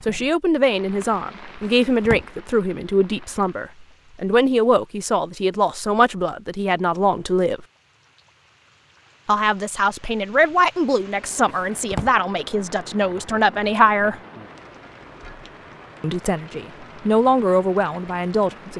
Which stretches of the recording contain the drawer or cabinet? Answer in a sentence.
You can hear the drawer or cabinet from 1.6 to 2.2 s and from 11.4 to 12.2 s.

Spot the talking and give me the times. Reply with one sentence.
You can hear the talking from 0.1 to 7.7 s, from 9.2 to 14.2 s and from 16.0 to 18.7 s.